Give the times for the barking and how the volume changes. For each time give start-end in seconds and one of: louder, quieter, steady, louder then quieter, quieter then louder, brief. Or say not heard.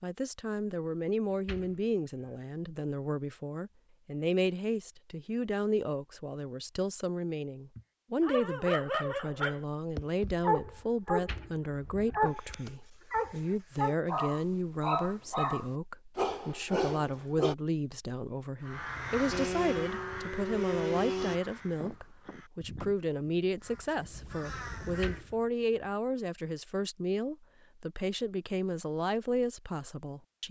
8.2-17.6 steady.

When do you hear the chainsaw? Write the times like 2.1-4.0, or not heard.
19.3-21.4.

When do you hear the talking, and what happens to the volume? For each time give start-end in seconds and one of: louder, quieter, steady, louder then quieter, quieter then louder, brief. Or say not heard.
0.0-30.4 steady.